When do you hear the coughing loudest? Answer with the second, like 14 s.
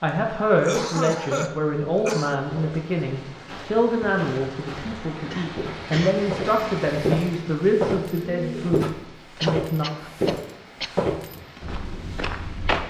1 s.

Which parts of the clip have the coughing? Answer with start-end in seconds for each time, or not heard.
0.5-2.4, 5.3-6.2, 9.4-11.1.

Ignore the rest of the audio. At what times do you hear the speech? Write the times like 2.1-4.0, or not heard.
0.0-9.8.